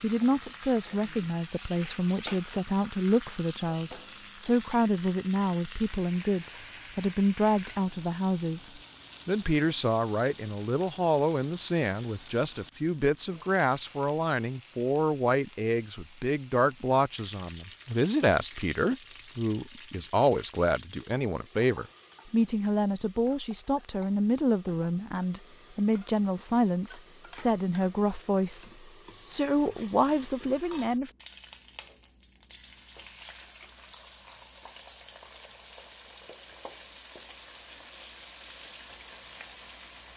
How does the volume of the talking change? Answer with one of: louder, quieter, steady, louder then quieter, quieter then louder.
steady.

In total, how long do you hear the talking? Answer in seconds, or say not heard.
31 s.